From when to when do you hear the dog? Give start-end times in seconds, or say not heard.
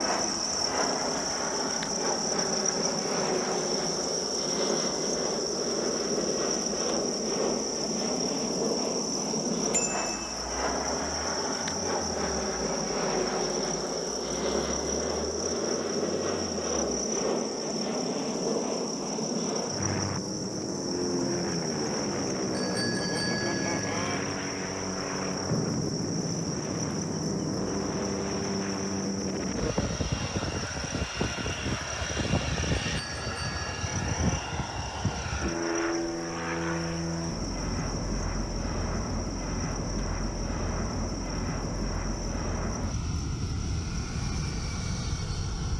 not heard.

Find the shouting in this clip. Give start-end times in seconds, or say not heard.
not heard.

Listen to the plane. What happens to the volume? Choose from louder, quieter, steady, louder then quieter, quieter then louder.
steady.